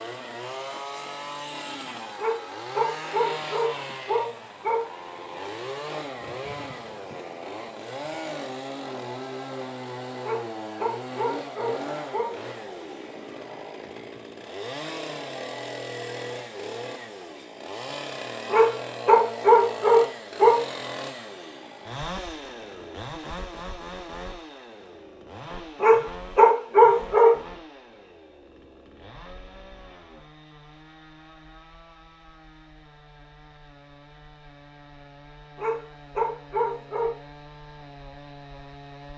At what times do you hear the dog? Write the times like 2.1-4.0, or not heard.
2.1-4.8, 10.2-12.3, 18.5-20.6, 25.8-27.3, 35.5-37.1.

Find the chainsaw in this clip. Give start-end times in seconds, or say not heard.
0.0-39.1.